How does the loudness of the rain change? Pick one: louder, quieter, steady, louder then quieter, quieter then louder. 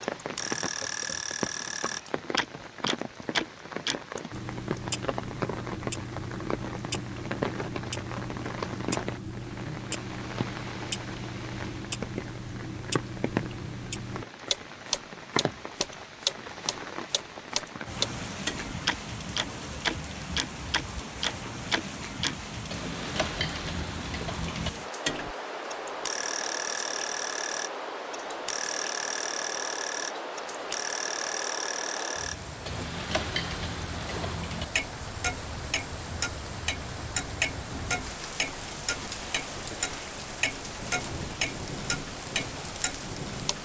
steady.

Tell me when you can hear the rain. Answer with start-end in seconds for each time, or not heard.
0.0-43.6.